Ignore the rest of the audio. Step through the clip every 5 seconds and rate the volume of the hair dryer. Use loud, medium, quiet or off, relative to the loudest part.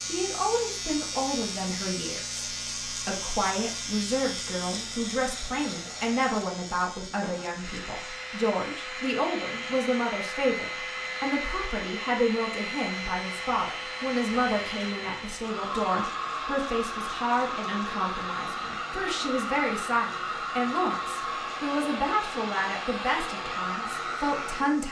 quiet, medium, loud, loud, loud.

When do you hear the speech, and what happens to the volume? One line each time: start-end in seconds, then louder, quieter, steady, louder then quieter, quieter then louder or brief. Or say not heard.
0.0-24.8 steady.